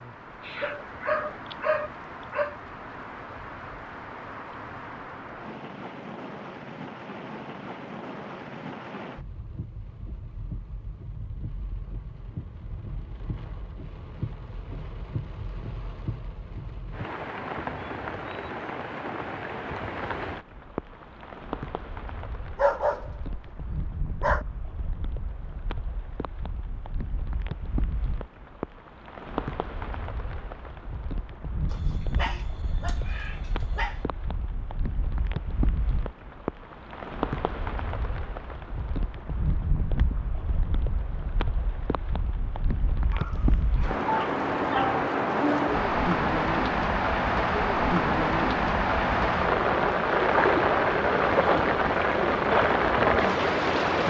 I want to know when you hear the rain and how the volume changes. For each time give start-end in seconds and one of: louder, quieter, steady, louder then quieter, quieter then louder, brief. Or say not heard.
0.0-54.0 louder.